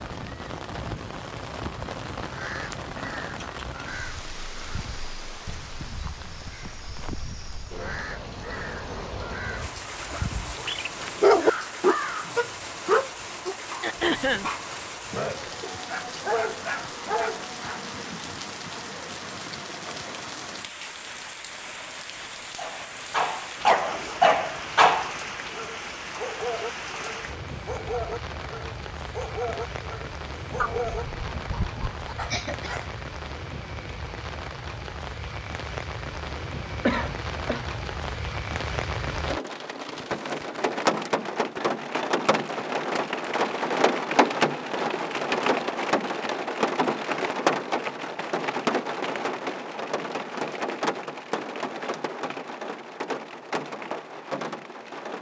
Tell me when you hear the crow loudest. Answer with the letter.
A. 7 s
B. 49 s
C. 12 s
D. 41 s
C.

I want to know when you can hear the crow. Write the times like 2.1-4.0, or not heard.
1.4-12.3.